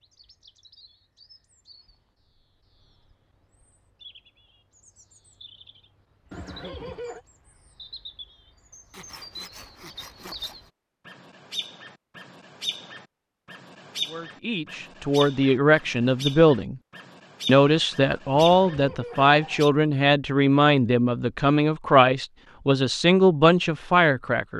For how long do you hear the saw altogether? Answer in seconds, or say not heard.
2 s.